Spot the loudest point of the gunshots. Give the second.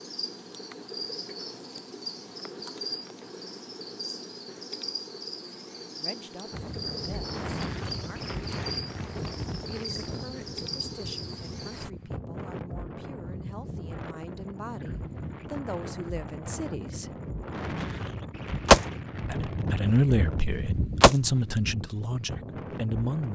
19 s.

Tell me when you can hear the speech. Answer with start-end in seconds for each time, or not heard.
6.0-8.3, 9.7-17.1, 19.2-23.3.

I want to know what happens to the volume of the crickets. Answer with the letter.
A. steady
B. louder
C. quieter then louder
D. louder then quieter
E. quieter
A.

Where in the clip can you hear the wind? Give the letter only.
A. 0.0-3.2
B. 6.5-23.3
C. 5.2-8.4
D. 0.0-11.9
B.